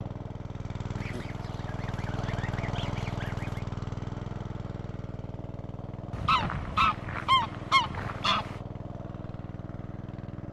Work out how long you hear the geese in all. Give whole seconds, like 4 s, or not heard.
5 s.